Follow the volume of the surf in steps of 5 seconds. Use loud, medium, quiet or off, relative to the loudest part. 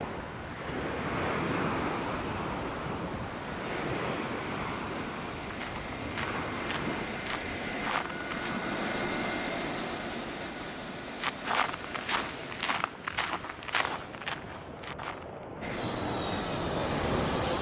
loud, medium, quiet, medium.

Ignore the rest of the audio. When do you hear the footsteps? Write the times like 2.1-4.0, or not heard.
5.5-8.6, 11.2-15.3.